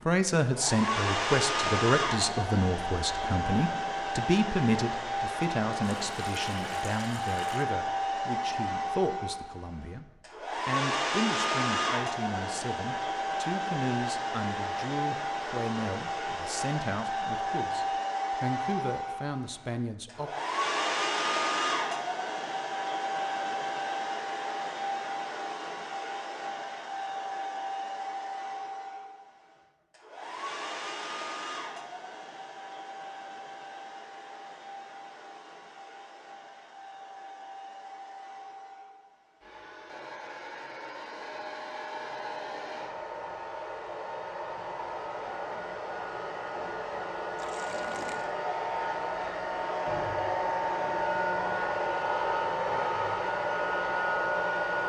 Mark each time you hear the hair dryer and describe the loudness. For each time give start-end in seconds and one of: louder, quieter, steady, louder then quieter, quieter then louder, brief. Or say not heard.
0.0-54.8 quieter then louder.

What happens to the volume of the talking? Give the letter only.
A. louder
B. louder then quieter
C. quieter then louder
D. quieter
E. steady
D.